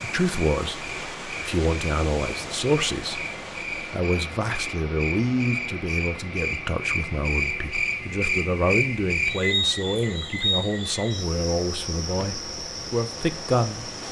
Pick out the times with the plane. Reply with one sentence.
You can't hear the plane here.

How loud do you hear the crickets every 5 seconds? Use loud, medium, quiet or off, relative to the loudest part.
medium, loud, medium.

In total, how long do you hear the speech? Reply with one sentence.
The speech can be heard for 14 seconds in total.